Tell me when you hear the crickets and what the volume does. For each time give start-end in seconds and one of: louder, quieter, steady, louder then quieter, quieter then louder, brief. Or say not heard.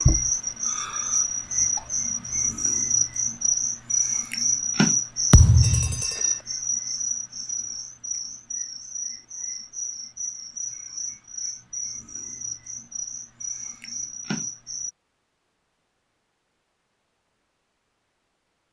0.0-14.9 quieter.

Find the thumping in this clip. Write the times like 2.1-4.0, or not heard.
5.3-6.0.